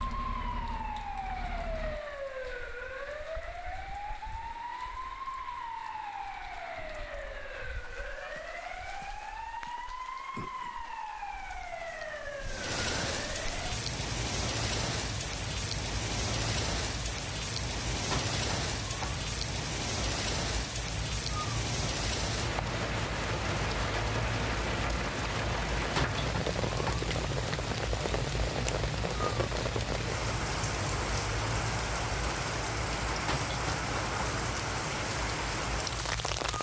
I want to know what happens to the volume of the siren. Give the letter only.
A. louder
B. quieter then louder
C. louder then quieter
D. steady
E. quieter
D.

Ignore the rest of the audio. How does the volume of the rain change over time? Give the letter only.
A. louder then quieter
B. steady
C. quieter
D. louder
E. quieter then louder
D.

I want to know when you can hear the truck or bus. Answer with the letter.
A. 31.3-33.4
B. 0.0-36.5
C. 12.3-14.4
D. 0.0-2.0
D.